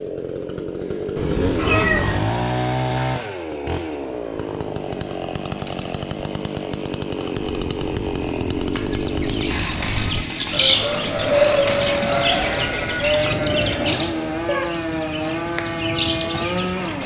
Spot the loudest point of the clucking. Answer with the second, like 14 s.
11 s.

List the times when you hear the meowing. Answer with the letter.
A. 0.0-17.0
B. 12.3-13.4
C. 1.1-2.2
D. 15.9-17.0
C.